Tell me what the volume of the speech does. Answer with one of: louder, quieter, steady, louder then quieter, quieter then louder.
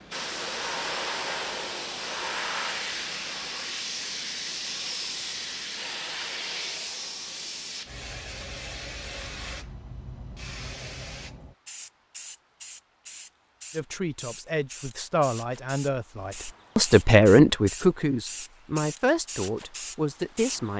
louder then quieter.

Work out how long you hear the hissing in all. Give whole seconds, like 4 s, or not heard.
21 s.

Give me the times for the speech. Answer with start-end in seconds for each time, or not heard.
13.8-20.7.